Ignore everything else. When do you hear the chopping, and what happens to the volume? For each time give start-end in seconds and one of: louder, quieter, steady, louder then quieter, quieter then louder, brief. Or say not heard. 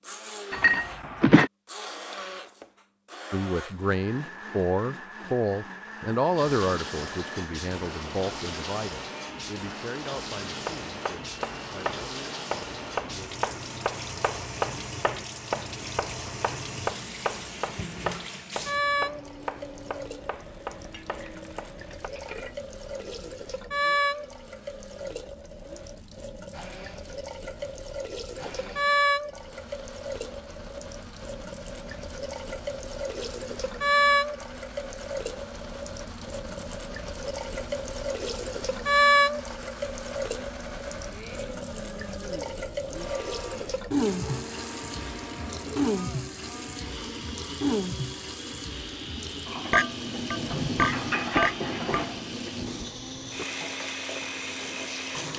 10.4-22.1 quieter.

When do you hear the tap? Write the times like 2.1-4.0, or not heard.
6.3-55.3.